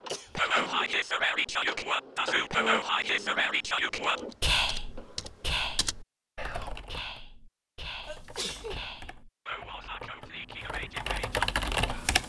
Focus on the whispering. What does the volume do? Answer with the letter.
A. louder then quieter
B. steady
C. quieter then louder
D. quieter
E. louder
D.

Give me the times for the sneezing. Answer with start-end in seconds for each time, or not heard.
0.1-0.8, 8.1-8.8.